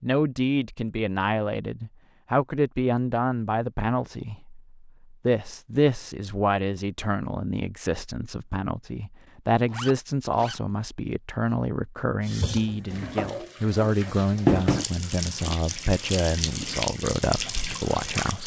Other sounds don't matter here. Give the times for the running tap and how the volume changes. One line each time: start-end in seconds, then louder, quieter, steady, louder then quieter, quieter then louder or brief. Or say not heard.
12.2-18.4 louder then quieter.